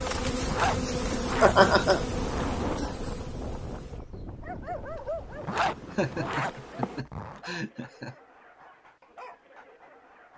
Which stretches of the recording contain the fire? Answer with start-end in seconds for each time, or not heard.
not heard.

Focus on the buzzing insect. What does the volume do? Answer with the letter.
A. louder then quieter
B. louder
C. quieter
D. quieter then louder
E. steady
D.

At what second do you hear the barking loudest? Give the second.
5 s.